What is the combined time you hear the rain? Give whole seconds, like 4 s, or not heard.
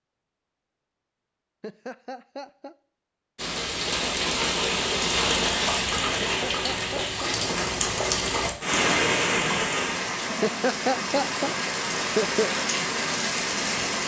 11 s.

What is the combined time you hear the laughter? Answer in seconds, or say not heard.
4 s.